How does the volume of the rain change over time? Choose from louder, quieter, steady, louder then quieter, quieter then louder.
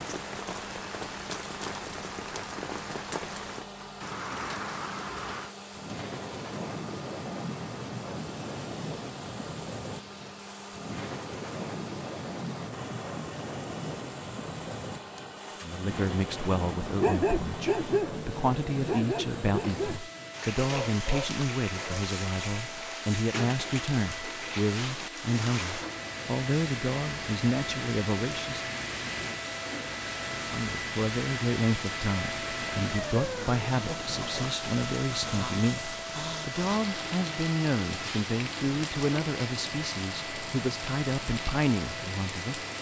steady.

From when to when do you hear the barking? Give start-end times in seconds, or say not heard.
17.0-18.2, 18.9-20.1, 20.6-22.1.